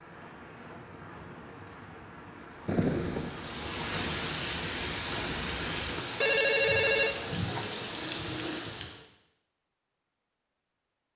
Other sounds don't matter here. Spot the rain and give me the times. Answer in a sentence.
The rain can be heard from 0.0 to 9.1 s.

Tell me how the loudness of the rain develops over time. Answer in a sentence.
The loudness of the rain goes up.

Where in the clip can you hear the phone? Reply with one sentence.
The phone can be heard from 2.6 to 3.3 s and from 6.2 to 7.7 s.